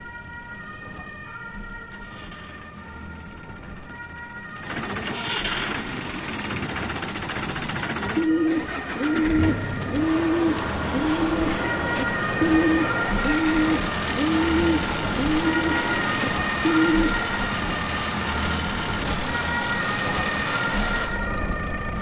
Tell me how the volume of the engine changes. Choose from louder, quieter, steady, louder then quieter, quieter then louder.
louder.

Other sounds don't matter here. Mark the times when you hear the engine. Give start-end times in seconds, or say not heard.
0.0-21.9.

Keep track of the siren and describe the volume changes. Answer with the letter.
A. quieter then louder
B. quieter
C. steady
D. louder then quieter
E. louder
E.